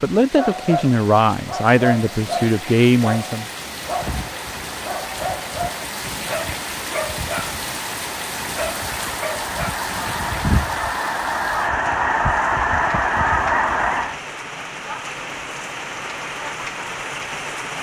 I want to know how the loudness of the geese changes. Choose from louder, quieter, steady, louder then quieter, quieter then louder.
louder.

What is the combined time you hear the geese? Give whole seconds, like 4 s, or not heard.
10 s.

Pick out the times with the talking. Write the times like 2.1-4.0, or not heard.
0.0-3.5.